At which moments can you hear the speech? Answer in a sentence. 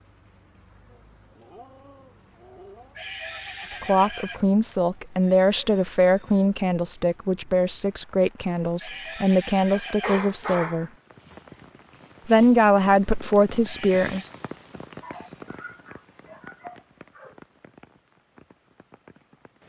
You can hear the speech from 3.8 to 10.9 s and from 12.2 to 14.3 s.